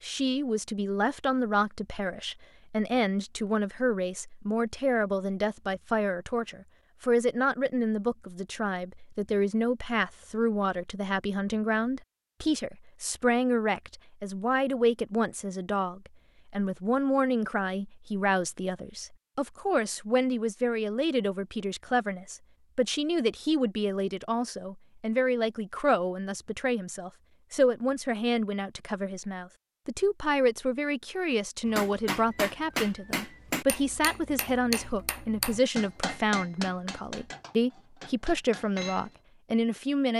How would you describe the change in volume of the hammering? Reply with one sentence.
The volume of the hammering goes down.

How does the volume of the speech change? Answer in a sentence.
The loudness of the speech stays about the same.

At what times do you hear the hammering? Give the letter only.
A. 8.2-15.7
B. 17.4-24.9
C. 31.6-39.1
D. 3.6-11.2
C.